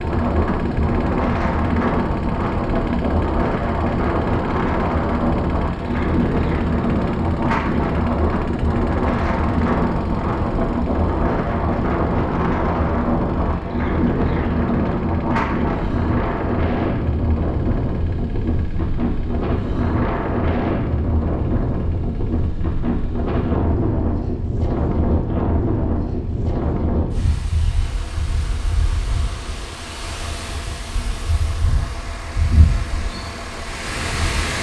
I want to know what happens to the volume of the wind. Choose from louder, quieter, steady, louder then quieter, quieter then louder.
quieter.